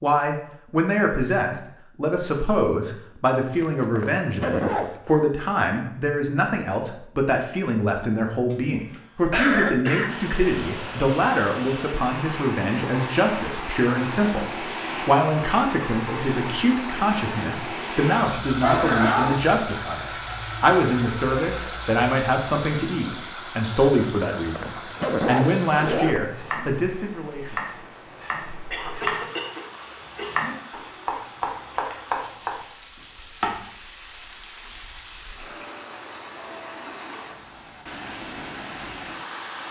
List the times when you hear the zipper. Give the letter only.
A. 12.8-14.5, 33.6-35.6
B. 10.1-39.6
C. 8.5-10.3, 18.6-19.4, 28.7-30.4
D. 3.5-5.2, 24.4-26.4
D.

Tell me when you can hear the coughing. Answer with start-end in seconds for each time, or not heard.
8.5-10.3, 18.6-19.4, 28.7-30.4.